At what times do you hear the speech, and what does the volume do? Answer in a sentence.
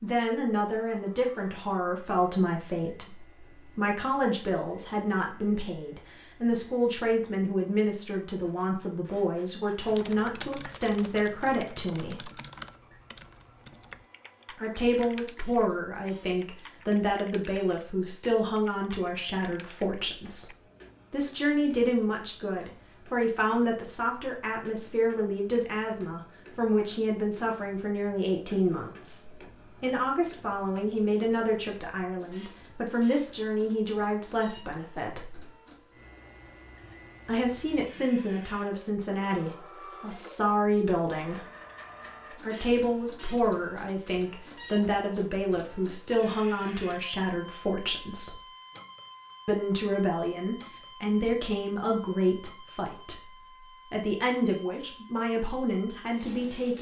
You can hear the speech from 0.0 to 12.3 s, at a steady volume; from 14.6 to 35.4 s, at a steady volume; from 37.2 to 41.5 s, getting quieter then louder; from 42.4 to 48.4 s, at a steady volume; and from 49.5 to 56.7 s, getting quieter then louder.